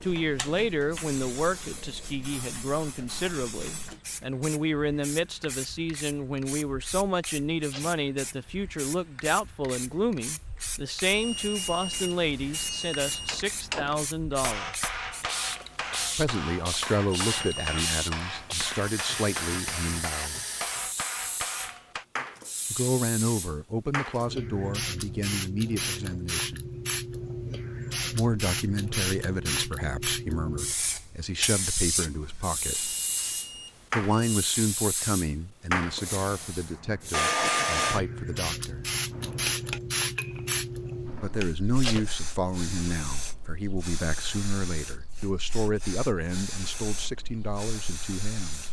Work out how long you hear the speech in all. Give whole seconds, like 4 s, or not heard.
40 s.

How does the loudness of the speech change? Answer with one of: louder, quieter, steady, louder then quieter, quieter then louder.
steady.